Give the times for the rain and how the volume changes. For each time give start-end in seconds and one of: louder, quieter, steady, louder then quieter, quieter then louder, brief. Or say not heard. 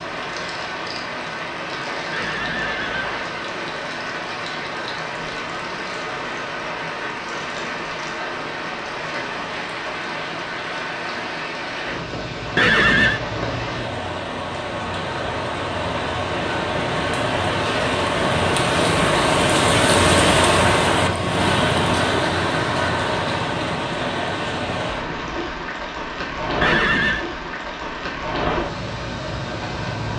0.0-30.1 louder then quieter.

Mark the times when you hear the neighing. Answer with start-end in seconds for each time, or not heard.
2.1-3.4, 12.6-13.2, 26.6-27.2.